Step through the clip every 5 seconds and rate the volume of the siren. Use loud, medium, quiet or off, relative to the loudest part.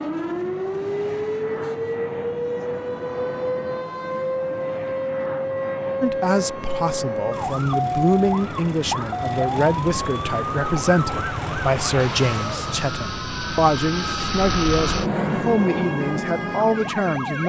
loud, loud, loud, medium.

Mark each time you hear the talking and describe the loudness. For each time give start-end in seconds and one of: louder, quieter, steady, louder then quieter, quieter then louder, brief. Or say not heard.
6.0-17.4 steady.